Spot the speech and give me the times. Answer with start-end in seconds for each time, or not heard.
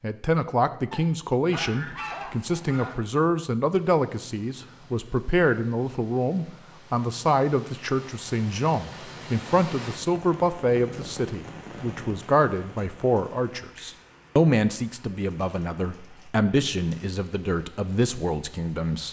0.0-19.0.